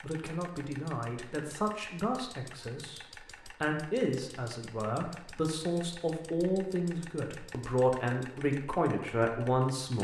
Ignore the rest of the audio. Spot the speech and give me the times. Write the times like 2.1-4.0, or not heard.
0.0-9.9.